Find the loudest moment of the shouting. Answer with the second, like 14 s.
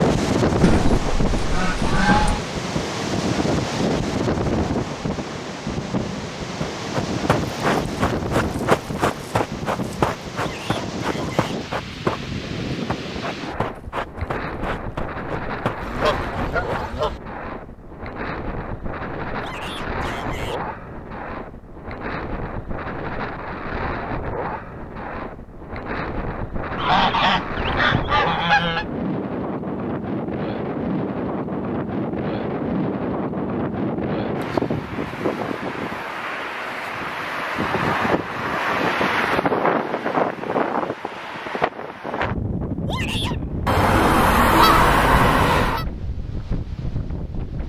43 s.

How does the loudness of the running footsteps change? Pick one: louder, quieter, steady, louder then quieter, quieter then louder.
quieter.